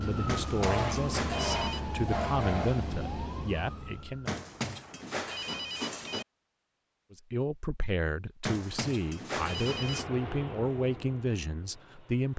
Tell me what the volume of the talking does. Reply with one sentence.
The loudness of the talking stays about the same.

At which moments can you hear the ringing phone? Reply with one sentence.
You can hear the ringing phone from 0.2 to 1.8 s, from 4.2 to 6.2 s and from 8.4 to 10.1 s.